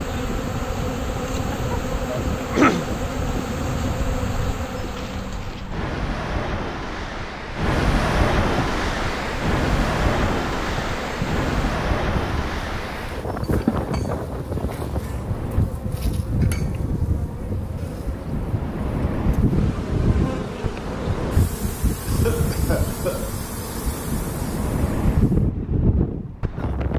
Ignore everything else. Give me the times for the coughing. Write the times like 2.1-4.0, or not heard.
2.4-2.9, 22.1-23.4.